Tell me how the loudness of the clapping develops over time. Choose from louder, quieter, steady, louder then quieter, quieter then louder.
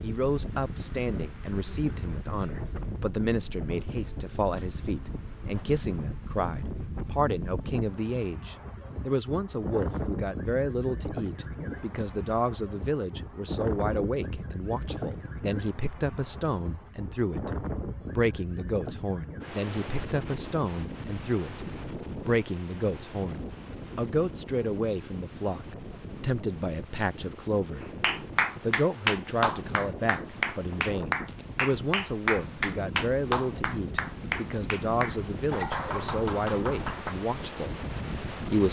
quieter.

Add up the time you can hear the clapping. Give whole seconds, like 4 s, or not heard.
9 s.